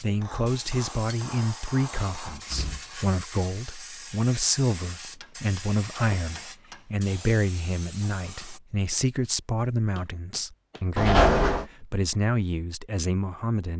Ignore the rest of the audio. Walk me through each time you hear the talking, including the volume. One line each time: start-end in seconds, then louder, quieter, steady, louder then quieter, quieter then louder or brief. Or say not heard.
0.0-13.7 steady.